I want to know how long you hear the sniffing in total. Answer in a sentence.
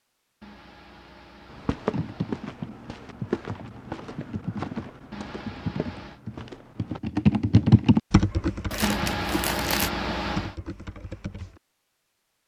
The sniffing can be heard for 5 seconds in total.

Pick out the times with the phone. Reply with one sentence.
You can't hear the phone here.